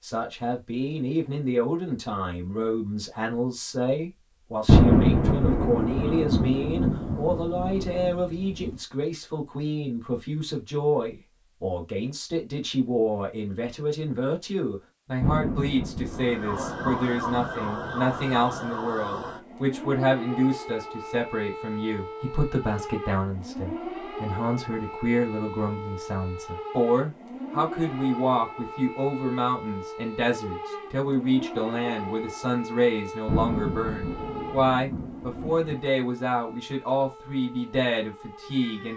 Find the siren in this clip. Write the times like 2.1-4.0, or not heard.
16.1-38.9.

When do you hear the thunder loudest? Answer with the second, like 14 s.
5 s.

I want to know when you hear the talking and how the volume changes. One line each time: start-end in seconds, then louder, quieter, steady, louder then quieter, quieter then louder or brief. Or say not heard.
0.0-38.9 steady.